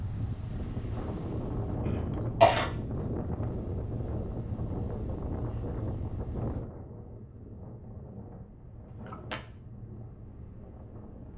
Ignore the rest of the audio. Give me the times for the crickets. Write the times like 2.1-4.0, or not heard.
not heard.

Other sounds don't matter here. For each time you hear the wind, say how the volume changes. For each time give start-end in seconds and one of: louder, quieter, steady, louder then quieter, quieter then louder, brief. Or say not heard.
0.0-11.3 quieter.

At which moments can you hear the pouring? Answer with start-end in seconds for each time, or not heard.
not heard.